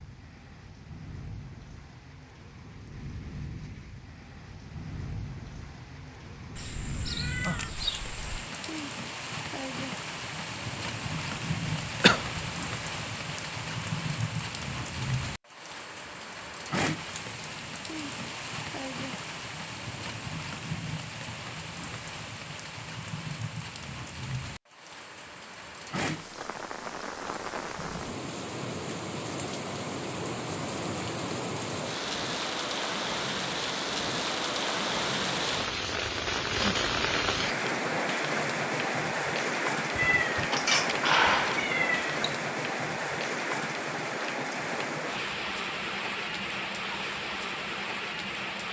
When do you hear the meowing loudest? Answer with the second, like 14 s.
41 s.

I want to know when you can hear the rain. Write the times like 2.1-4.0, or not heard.
0.0-48.6.